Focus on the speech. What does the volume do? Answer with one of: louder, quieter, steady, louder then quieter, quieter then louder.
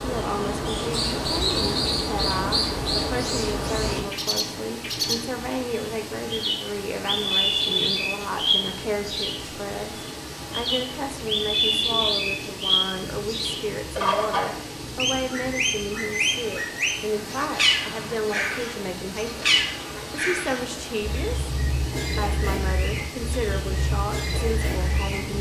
steady.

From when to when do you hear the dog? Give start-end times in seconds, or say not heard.
not heard.